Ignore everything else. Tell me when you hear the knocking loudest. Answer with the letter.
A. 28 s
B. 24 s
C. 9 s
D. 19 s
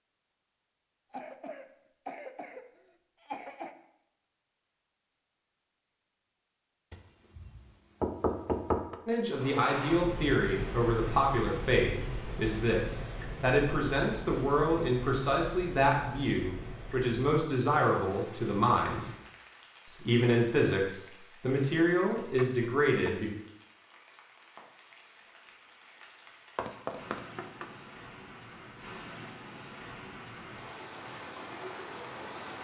C.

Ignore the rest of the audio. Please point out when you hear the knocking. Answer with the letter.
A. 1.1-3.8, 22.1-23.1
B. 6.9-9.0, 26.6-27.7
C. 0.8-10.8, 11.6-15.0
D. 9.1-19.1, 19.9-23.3
B.